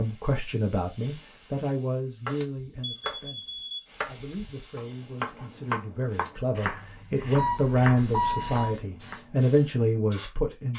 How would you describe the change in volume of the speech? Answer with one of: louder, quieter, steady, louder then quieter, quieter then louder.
quieter then louder.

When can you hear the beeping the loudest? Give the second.
8 s.